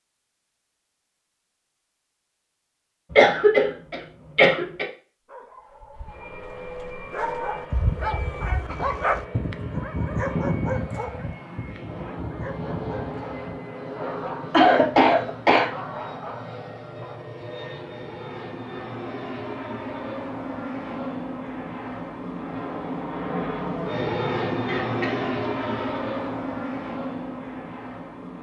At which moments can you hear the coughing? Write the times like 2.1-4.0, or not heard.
3.1-4.8, 14.5-15.7, 24.6-26.1.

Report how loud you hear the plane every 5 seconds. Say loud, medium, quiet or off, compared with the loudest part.
off, medium, medium, medium, loud, loud.